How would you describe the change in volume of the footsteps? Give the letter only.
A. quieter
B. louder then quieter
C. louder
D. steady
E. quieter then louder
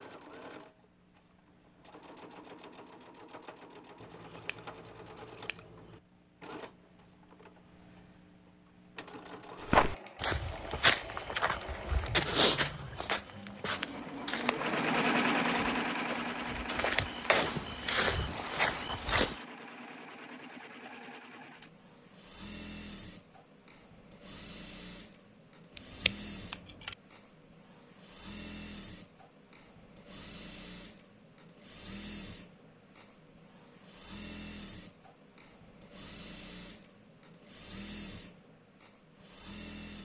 E.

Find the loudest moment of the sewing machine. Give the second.
15 s.